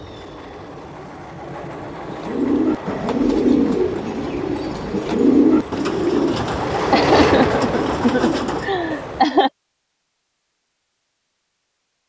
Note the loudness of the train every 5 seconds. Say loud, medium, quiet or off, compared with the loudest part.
medium, loud, off.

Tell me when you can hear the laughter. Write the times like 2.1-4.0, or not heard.
6.9-9.5.